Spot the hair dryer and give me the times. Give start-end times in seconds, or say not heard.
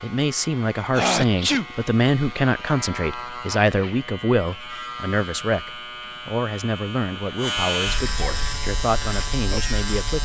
not heard.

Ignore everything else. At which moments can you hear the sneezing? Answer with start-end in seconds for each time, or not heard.
0.9-1.6, 8.1-8.5.